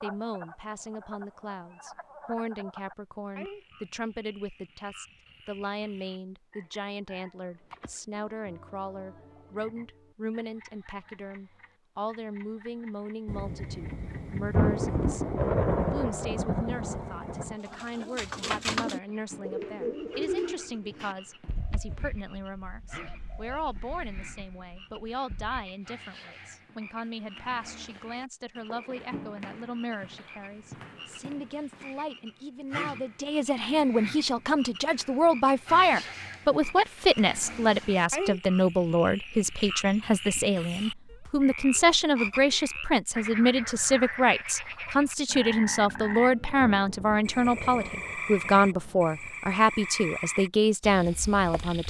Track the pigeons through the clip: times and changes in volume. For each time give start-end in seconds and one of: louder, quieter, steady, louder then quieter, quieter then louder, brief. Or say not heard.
17.6-25.7 quieter.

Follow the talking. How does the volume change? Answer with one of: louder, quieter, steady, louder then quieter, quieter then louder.
louder.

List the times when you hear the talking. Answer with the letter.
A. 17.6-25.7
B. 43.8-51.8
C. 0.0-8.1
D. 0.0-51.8
D.